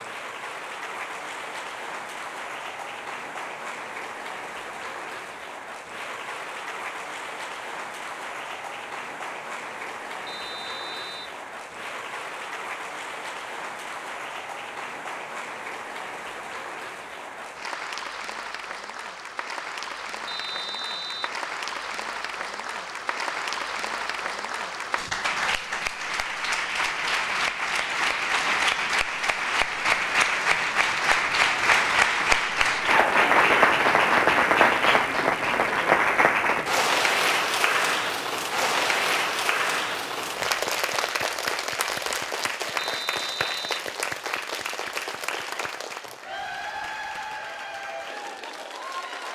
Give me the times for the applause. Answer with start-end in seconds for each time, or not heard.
0.0-49.3.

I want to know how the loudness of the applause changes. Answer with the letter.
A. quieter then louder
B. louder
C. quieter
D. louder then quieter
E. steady
D.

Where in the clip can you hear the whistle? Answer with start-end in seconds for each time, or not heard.
10.2-11.3, 20.2-21.4, 42.8-43.9.